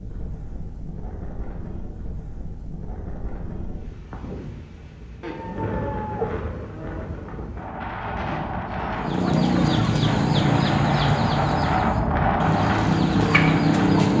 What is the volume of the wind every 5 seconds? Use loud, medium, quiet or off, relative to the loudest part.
quiet, medium, loud.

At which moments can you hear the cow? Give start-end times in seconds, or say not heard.
5.2-7.0.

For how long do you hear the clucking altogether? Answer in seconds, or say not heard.
5 s.